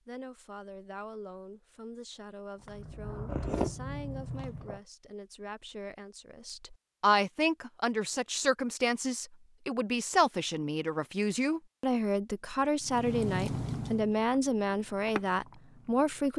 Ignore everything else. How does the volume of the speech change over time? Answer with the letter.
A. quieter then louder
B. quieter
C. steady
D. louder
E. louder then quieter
D.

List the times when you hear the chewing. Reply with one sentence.
You can hear the chewing from 2.6 to 4.8 s and from 12.8 to 16.3 s.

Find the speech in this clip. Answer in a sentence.
You can hear the speech from 0.1 to 16.3 s.